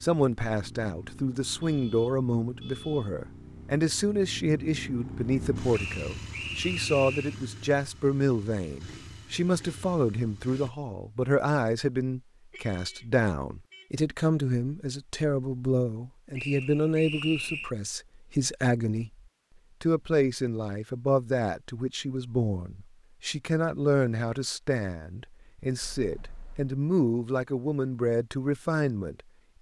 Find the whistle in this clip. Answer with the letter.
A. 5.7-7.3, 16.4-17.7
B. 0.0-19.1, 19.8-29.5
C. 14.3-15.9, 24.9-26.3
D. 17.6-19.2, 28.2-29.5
A.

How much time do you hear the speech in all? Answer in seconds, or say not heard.
29 s.